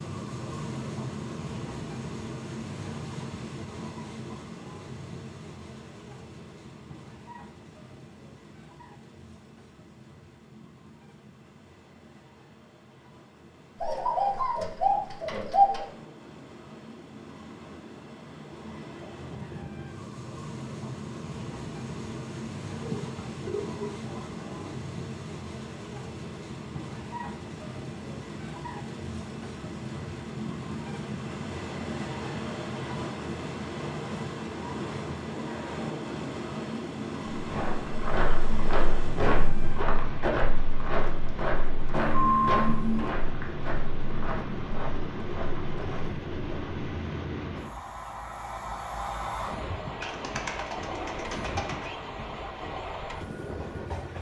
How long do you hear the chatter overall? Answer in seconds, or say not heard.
not heard.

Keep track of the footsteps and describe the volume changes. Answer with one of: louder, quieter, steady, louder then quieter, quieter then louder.
quieter.